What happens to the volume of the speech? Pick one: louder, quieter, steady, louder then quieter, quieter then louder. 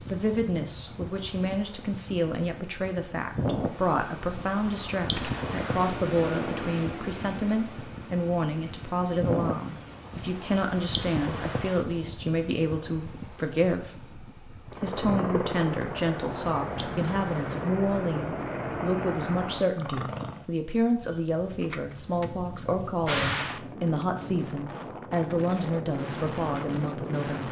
steady.